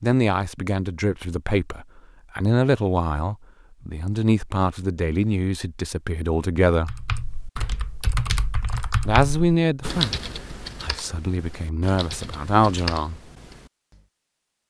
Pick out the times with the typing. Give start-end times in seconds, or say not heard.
6.8-14.1.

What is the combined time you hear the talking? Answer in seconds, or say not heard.
11 s.